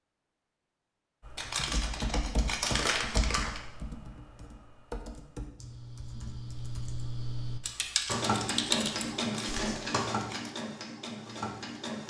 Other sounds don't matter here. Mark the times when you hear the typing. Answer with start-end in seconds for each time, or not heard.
1.2-9.7.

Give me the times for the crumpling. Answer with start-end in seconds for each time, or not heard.
1.4-3.6, 9.2-10.6.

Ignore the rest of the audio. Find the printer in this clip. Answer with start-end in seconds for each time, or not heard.
8.1-12.0.